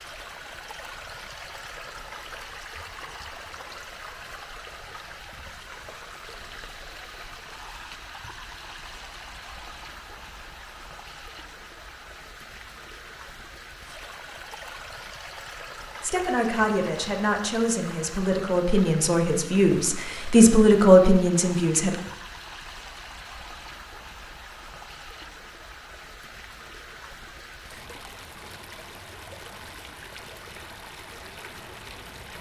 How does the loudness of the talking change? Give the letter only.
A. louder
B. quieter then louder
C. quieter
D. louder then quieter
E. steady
A.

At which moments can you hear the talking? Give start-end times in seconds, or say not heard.
16.0-21.9.